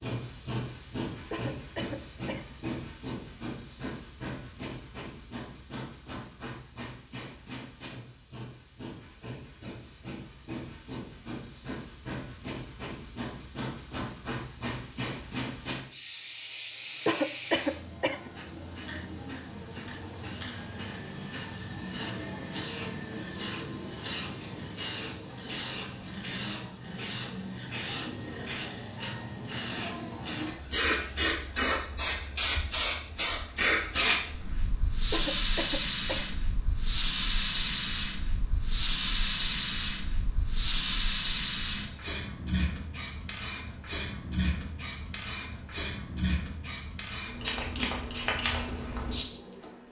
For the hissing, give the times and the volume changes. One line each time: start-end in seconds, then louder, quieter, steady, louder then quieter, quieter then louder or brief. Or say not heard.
0.0-49.7 louder.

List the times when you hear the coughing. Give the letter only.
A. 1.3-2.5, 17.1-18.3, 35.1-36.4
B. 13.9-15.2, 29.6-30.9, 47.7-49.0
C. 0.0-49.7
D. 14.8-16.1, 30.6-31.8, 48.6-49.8
A.